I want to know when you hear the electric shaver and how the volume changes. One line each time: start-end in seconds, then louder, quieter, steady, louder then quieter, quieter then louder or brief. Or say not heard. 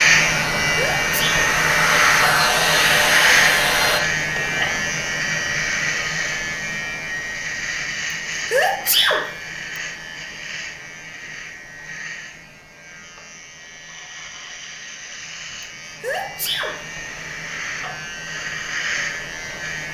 0.0-19.8 quieter then louder.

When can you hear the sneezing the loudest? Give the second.
9 s.